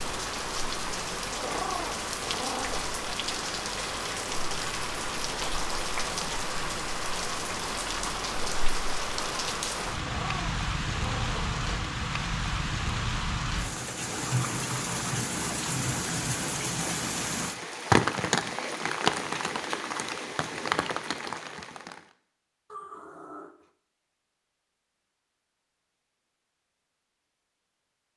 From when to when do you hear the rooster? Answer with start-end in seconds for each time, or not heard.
not heard.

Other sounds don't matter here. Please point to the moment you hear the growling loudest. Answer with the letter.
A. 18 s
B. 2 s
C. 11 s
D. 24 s
B.